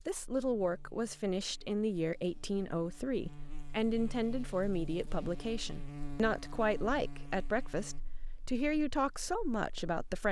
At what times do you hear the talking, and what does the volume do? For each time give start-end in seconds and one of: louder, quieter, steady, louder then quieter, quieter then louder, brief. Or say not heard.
0.1-10.2 steady.